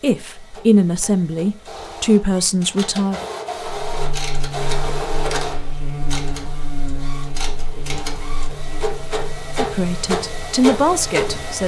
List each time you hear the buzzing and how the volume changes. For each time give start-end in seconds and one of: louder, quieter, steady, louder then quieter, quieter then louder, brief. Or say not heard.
3.6-11.6 quieter.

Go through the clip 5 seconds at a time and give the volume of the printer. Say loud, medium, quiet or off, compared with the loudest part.
medium, medium, loud.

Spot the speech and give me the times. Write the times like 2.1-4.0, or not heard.
0.0-3.2, 9.6-11.6.